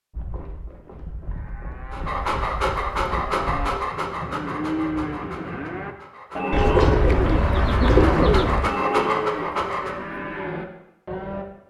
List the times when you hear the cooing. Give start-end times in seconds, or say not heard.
6.5-8.7.